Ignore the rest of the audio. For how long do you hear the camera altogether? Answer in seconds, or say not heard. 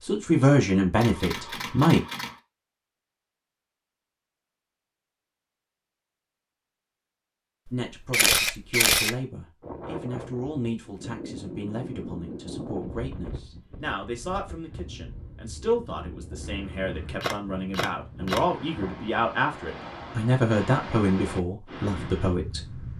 4 s.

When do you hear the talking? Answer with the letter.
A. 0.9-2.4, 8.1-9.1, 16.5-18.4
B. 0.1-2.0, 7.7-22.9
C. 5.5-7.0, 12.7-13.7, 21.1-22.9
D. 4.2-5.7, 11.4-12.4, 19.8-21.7
B.